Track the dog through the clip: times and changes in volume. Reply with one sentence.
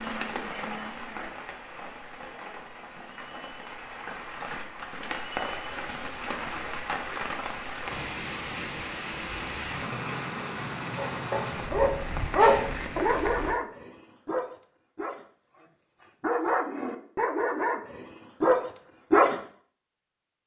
You can hear the dog from 10.9 to 19.4 s, getting quieter then louder.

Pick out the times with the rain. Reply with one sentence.
You can hear the rain from 0.0 to 13.6 s.